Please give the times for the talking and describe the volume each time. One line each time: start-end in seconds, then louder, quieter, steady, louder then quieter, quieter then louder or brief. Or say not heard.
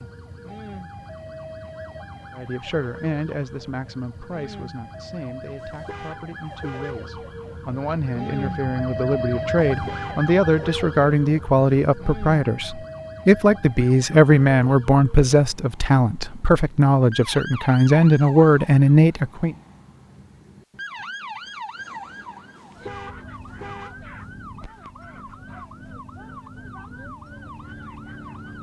2.4-19.6 louder.